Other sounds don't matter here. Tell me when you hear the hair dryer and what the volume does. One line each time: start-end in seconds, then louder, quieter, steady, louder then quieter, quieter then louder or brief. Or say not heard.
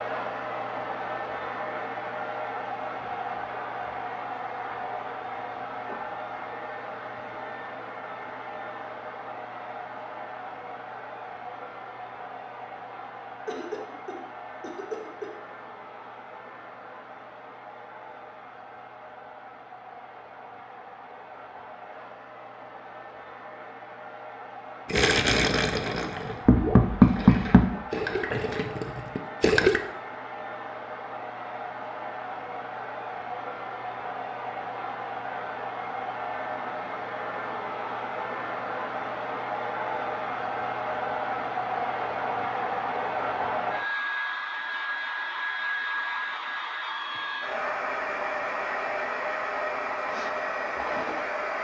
0.0-51.5 quieter then louder.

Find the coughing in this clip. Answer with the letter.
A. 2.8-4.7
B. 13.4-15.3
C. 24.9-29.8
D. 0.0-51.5
B.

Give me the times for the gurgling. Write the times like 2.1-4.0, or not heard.
24.9-29.8.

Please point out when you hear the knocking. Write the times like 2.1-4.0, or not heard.
26.4-27.7.